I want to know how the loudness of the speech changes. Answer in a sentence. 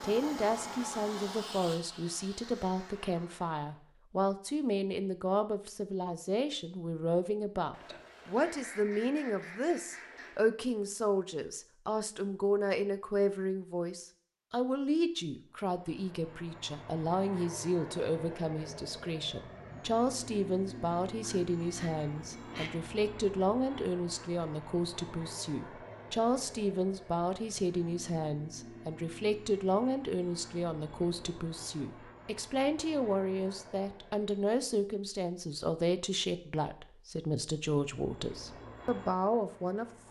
The loudness of the speech stays about the same.